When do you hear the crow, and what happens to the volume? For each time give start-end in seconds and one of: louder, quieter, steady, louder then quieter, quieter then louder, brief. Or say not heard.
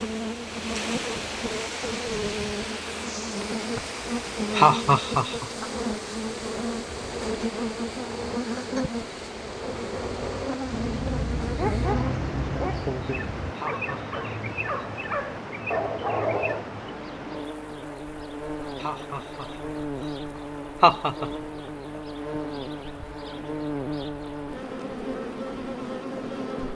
not heard.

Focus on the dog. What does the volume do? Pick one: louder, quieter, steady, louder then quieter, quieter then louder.
quieter then louder.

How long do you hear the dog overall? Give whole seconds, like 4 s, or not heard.
6 s.